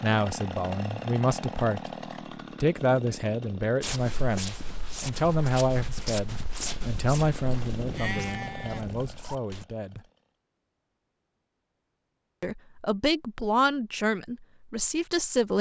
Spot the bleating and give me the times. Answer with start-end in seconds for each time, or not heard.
7.5-9.2.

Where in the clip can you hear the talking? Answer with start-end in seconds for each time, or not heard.
0.0-1.9, 2.6-10.1, 12.4-15.5.